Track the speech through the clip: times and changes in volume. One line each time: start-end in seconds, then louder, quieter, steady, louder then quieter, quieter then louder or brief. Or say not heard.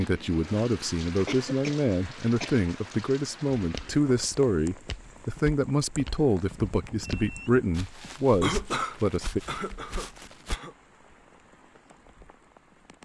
0.0-9.4 steady.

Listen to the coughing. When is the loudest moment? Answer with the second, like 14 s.
9 s.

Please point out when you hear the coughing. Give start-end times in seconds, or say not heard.
1.2-2.7, 8.4-10.7.